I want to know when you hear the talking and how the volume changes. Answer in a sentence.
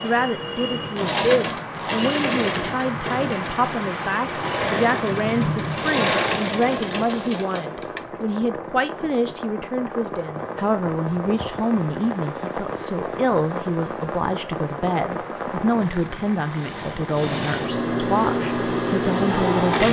You can hear the talking from 0.0 to 19.8 s, at a steady volume.